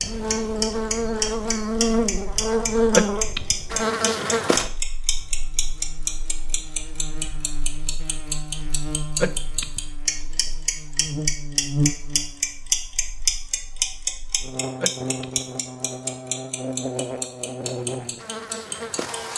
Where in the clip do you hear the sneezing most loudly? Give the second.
3 s.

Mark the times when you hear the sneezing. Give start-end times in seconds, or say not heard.
2.9-3.5, 9.2-9.8, 14.8-15.4.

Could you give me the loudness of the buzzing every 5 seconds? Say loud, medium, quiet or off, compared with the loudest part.
loud, quiet, medium, medium.